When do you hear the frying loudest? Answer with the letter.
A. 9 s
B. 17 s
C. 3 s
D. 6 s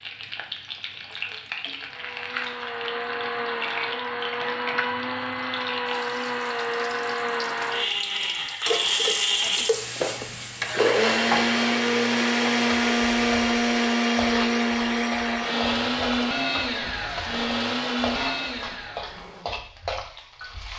A.